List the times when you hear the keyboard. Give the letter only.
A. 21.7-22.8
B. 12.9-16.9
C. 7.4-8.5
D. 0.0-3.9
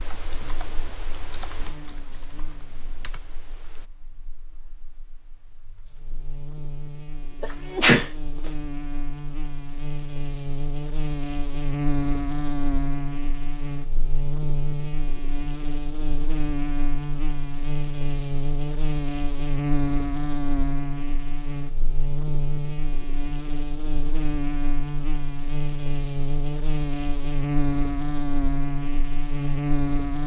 D.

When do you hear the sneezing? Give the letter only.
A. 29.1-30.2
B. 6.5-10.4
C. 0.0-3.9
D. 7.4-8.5
D.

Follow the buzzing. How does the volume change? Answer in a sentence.
The loudness of the buzzing goes up.